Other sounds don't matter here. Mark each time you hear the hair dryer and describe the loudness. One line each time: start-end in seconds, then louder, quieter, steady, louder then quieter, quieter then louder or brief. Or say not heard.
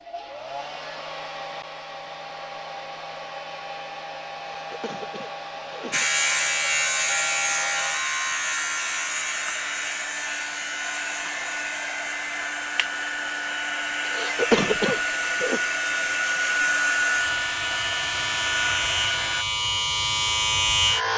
0.0-19.4 louder.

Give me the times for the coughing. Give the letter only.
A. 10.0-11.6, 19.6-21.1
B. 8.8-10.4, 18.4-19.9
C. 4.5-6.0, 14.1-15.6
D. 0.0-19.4
C.